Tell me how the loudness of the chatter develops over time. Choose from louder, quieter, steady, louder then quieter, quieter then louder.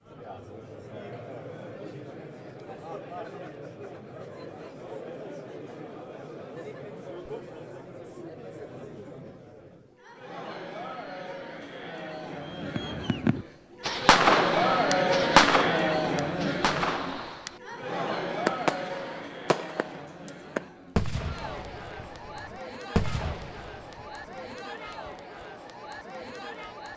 louder then quieter.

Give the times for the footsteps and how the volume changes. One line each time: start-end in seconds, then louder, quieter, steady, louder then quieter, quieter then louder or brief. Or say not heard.
not heard.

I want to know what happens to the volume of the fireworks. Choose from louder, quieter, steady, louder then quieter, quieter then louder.
quieter.